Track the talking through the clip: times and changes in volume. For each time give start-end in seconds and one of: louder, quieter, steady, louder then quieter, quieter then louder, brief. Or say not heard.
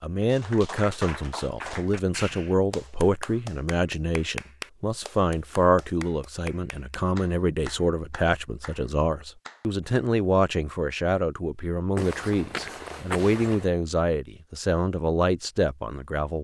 0.0-16.3 steady.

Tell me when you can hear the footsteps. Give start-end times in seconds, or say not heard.
11.9-13.7.